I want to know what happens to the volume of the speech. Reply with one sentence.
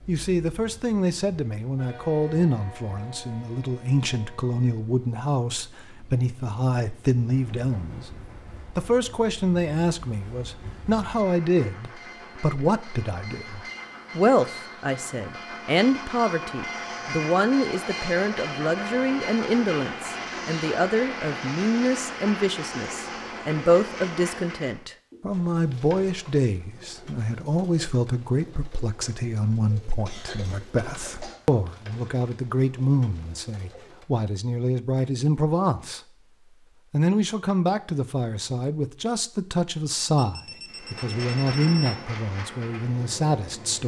The loudness of the speech stays about the same.